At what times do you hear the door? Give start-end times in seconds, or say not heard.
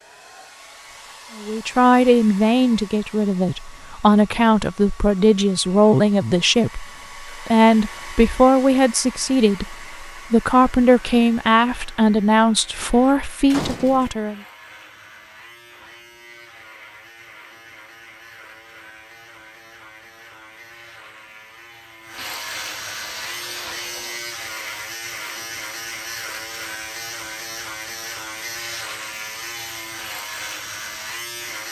13.5-14.1.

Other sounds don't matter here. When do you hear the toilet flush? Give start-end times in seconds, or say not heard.
22.1-24.2.